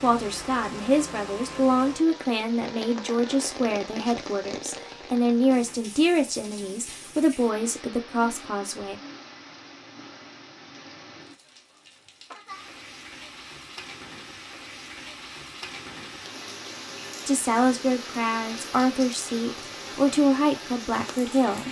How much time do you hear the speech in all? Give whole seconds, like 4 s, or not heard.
13 s.